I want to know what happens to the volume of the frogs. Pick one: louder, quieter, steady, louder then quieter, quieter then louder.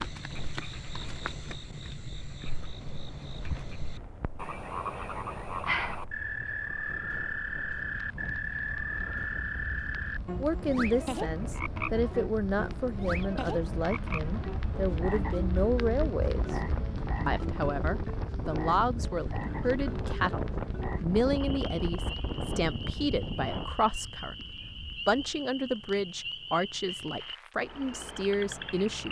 louder then quieter.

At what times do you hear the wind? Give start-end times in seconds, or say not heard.
0.0-23.7.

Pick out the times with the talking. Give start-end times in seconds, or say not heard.
10.4-16.6, 17.2-29.0.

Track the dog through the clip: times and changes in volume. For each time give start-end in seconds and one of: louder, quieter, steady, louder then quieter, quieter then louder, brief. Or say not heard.
not heard.